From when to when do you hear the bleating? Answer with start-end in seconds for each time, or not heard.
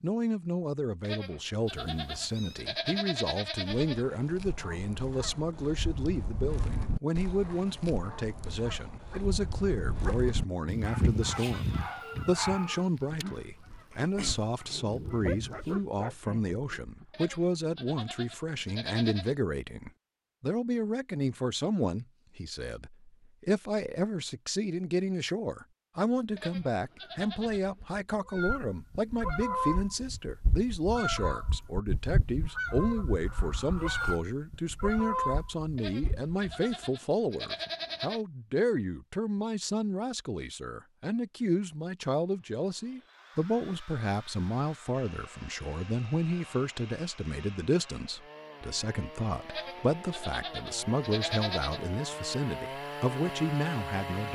1.0-4.0, 17.1-19.4, 26.4-27.9, 35.8-38.2, 49.5-51.8.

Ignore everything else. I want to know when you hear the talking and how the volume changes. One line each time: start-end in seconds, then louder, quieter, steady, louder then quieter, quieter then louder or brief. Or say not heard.
0.0-54.2 steady.